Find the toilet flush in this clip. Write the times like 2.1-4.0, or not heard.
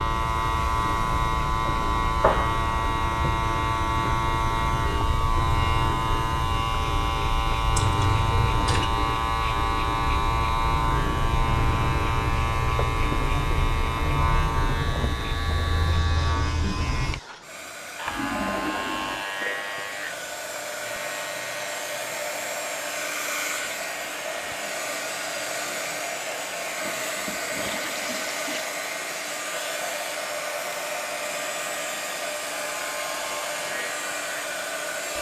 7.7-8.9, 18.1-19.2, 26.8-28.7.